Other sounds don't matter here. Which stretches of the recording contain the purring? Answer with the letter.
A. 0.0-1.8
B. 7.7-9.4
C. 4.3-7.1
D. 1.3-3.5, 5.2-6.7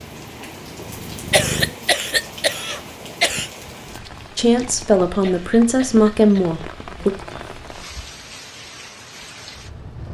A.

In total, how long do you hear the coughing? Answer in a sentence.
The coughing can be heard for 4 seconds in total.